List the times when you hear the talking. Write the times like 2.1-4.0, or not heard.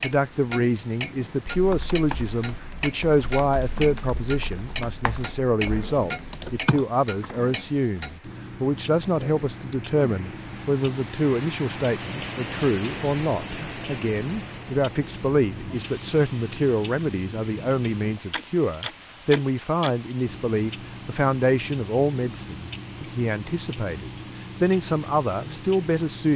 0.0-26.3.